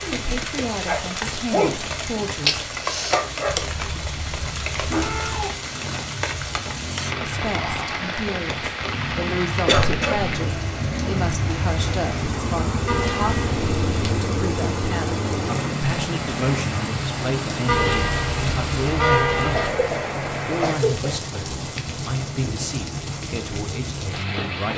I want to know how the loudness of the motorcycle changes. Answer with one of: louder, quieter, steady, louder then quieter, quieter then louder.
louder then quieter.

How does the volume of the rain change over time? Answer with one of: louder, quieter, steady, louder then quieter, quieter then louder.
steady.